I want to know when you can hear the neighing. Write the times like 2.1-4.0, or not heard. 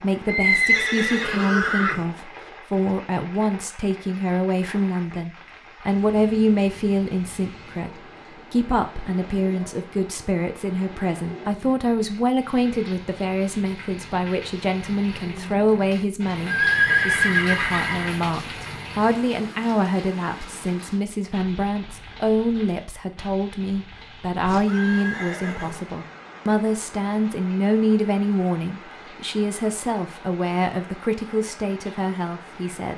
0.2-2.0, 16.4-18.1, 24.4-25.9.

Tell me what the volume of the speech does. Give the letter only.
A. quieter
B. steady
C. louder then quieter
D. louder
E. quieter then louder
B.